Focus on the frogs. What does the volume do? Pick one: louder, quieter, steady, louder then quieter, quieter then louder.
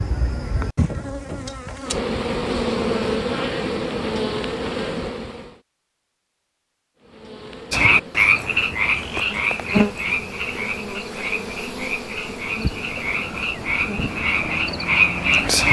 quieter then louder.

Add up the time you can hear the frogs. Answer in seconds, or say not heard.
8 s.